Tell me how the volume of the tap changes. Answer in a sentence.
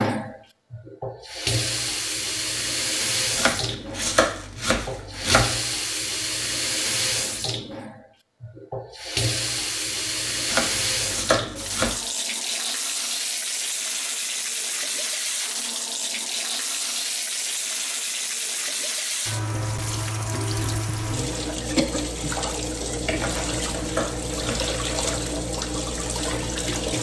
The volume of the tap stays about the same.